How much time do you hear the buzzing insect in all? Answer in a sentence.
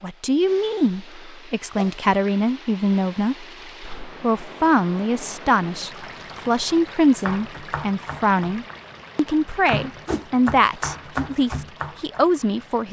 The buzzing insect can't be heard in this clip.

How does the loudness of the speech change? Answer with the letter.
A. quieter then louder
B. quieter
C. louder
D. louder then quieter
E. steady
E.